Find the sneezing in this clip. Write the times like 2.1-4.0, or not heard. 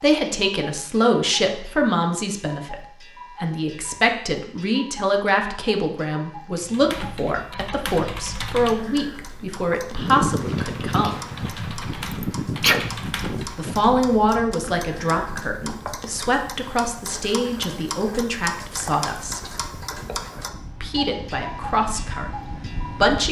12.1-12.8.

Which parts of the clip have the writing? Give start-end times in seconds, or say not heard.
not heard.